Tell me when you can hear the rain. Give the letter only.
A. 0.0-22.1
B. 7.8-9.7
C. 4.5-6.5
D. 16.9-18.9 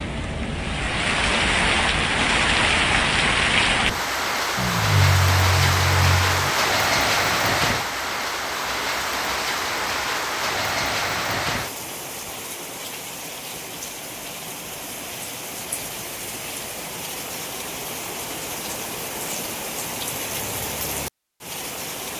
A.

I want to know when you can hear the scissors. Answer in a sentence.
The scissors can be heard from 4.5 to 6.5 s.